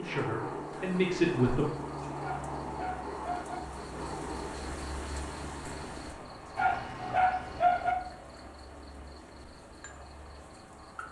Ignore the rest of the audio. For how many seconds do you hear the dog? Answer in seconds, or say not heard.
3 s.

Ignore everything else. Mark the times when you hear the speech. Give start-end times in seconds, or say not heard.
0.0-1.6.